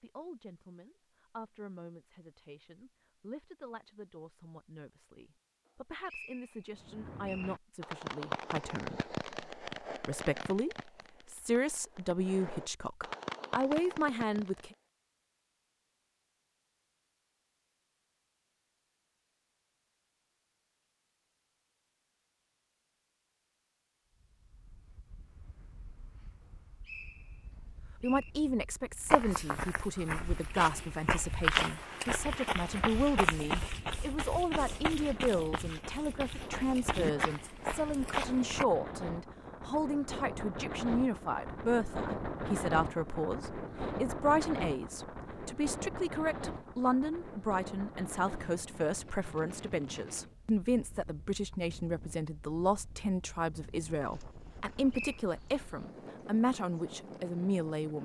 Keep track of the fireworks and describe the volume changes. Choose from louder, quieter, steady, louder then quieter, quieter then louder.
quieter then louder.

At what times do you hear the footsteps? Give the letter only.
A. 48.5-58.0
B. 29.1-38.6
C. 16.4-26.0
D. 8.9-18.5
B.